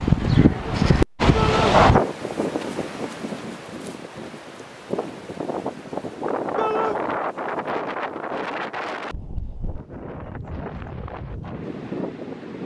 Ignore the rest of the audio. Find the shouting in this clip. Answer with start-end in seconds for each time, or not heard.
1.3-1.8, 6.5-7.0.